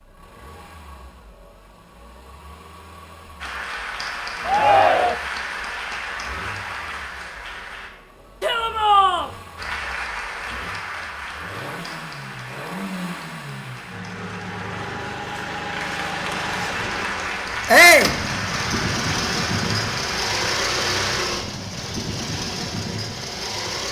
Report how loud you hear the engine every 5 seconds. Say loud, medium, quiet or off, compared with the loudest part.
quiet, quiet, medium, loud, loud.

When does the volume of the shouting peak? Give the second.
18 s.